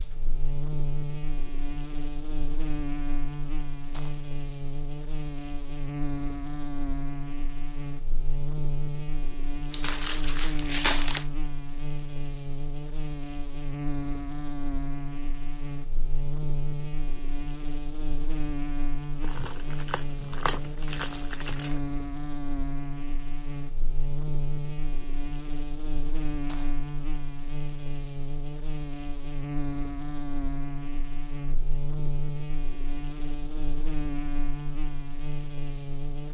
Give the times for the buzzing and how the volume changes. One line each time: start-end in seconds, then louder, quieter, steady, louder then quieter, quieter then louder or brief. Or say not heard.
0.0-36.2 steady.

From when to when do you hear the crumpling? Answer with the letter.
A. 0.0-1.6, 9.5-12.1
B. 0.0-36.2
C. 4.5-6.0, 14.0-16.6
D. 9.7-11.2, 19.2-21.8
D.